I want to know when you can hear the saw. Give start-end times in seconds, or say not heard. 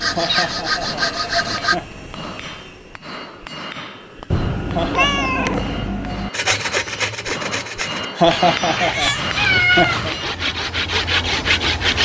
0.0-1.8, 6.3-11.9.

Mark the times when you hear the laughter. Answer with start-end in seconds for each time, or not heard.
0.1-2.0, 4.7-6.2, 8.2-10.1.